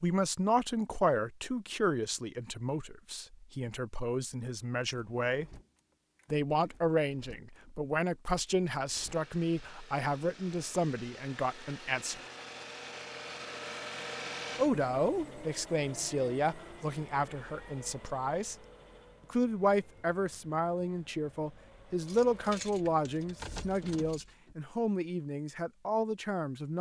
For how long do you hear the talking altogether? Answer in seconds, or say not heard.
23 s.